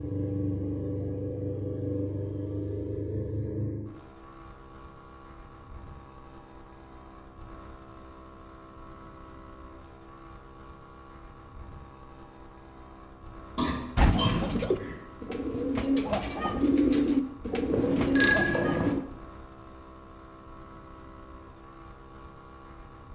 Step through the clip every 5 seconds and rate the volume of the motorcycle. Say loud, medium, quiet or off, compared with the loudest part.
loud, quiet, quiet, quiet, quiet.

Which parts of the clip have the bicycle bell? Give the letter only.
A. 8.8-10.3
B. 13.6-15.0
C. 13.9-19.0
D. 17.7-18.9
D.